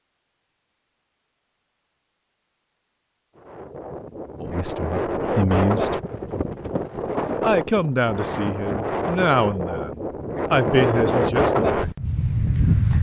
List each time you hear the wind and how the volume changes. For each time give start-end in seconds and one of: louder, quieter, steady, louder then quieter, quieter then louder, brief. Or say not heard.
3.4-12.9 louder.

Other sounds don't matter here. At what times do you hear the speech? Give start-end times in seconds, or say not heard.
4.4-6.0, 7.4-11.9.